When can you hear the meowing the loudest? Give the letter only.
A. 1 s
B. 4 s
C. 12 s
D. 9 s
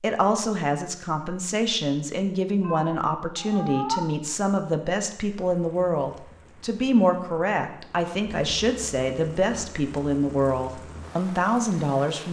B.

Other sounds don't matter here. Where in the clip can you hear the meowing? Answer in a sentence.
The meowing can be heard from 2.6 to 4.0 s.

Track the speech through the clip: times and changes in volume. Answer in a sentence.
The speech can be heard from 0.0 to 12.2 s, at a steady volume.